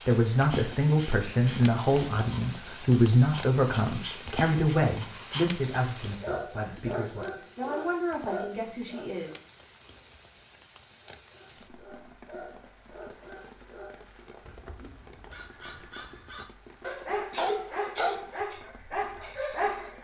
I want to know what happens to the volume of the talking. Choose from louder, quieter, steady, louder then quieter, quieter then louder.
quieter.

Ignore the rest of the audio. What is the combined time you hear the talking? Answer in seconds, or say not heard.
9 s.